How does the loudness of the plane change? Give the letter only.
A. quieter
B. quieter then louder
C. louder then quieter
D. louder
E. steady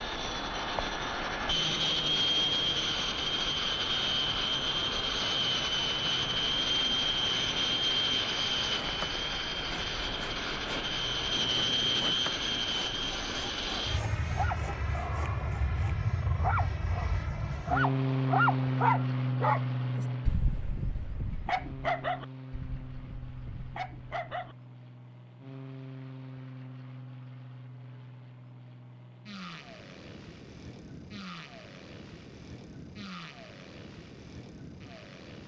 A.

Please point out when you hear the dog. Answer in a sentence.
The dog can be heard from 14.3 to 24.6 s.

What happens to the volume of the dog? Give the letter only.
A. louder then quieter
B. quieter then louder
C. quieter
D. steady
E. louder
A.